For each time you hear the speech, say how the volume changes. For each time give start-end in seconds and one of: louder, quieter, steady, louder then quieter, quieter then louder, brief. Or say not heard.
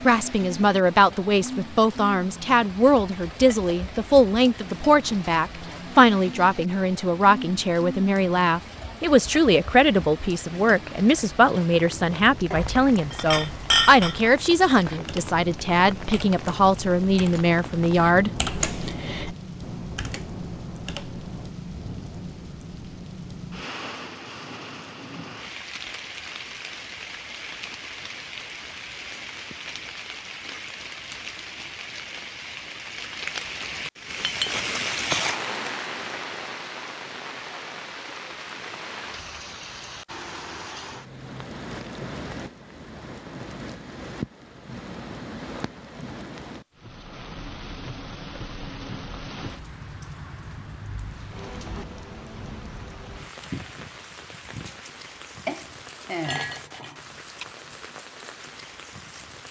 0.1-18.3 steady.